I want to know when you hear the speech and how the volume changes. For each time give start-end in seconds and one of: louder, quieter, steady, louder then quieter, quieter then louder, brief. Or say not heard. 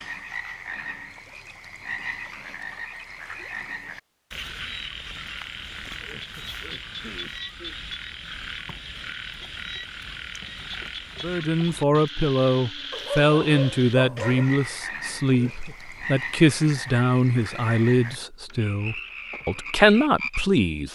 11.2-20.9 steady.